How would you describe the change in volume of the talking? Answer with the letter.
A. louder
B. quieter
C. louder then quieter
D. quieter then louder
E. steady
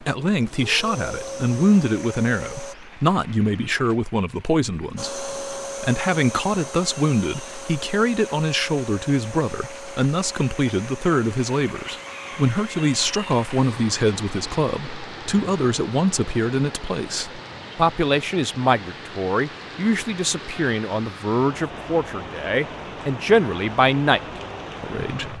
E.